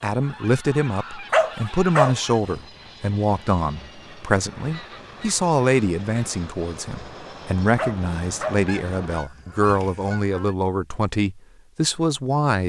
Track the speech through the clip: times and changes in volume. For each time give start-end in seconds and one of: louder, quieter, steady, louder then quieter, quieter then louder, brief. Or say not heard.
0.0-12.6 steady.